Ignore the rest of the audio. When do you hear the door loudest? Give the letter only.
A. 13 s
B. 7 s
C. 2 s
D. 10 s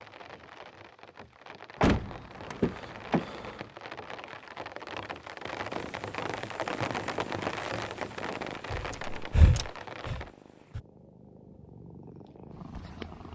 C.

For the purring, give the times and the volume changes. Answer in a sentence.
The purring can be heard from 5.7 to 13.3 s, getting quieter then louder.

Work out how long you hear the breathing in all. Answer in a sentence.
The breathing can be heard for 2 seconds in total.